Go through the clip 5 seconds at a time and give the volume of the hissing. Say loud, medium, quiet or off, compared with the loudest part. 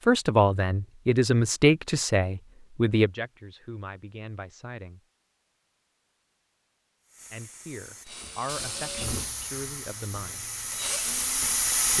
off, medium, loud.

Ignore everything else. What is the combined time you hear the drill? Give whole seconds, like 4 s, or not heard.
4 s.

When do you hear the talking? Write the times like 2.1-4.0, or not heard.
0.1-5.0, 7.3-10.4.